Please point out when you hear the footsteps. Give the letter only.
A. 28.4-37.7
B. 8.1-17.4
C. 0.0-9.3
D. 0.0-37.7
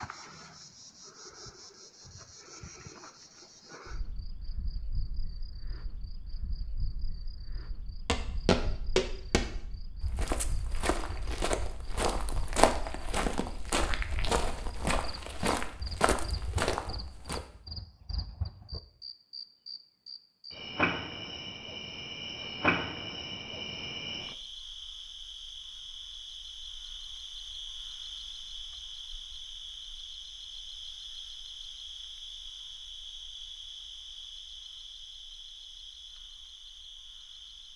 B.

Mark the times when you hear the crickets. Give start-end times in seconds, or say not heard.
0.0-37.7.